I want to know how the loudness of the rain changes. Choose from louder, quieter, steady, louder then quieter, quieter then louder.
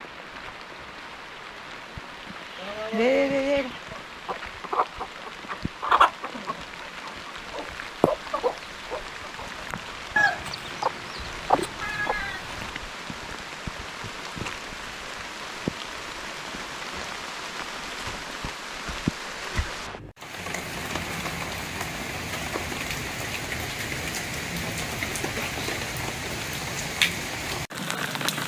louder.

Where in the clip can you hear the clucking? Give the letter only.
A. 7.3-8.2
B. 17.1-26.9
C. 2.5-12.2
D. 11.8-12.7
C.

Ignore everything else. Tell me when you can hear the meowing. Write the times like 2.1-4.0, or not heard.
11.8-12.7.